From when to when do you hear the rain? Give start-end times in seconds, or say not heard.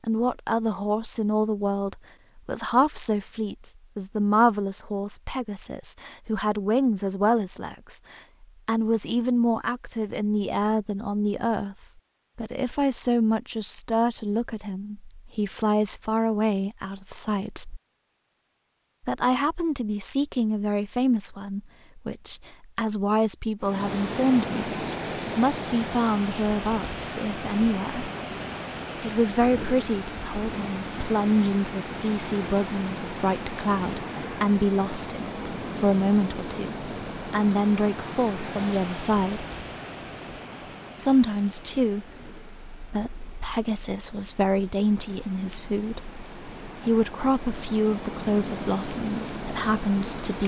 23.6-50.4.